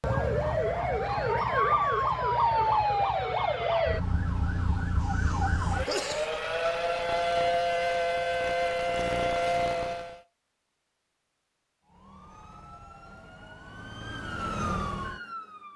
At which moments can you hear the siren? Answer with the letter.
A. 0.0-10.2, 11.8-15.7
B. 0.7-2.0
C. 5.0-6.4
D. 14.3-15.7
A.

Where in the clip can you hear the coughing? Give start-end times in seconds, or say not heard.
5.0-6.4.